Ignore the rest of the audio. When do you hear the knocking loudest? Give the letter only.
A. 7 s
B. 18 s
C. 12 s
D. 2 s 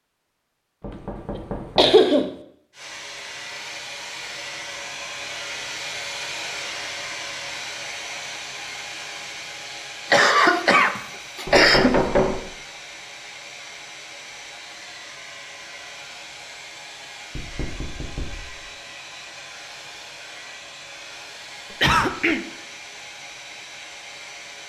C.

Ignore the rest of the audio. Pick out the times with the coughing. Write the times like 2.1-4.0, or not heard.
1.4-2.4, 10.1-12.1, 21.7-22.4.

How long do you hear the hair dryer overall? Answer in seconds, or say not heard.
22 s.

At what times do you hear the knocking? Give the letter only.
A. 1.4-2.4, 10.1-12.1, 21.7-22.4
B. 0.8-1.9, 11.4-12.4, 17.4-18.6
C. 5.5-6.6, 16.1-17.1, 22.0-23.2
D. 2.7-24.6
B.